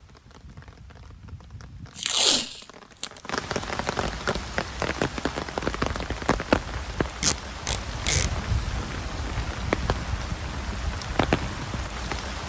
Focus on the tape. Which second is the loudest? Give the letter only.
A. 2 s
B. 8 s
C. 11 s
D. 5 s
A.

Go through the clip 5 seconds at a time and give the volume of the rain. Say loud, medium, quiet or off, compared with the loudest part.
medium, loud, loud.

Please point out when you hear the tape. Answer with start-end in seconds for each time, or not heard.
1.9-3.2, 7.2-8.3.